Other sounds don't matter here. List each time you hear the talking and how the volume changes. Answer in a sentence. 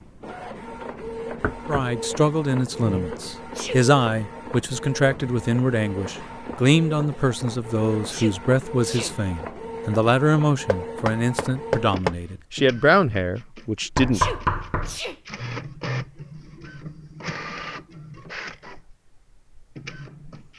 The talking can be heard from 1.6 to 14.2 s, at a steady volume.